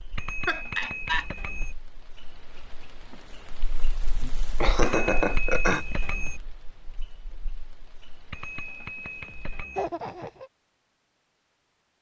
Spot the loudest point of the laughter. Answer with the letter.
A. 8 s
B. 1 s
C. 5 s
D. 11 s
C.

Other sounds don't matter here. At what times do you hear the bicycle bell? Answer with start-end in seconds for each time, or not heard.
0.1-1.8, 4.8-6.4, 8.3-9.9.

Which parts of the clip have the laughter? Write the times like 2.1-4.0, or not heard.
0.5-1.2, 4.6-5.8, 9.8-10.5.